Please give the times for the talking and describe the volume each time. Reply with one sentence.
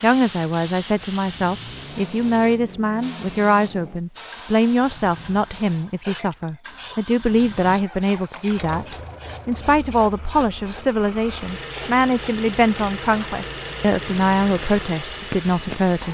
The talking can be heard from 0.0 to 16.0 s, at a steady volume.